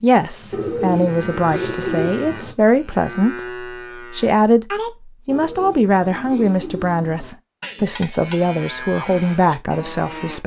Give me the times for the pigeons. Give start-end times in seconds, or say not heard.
0.5-2.5, 5.2-7.3.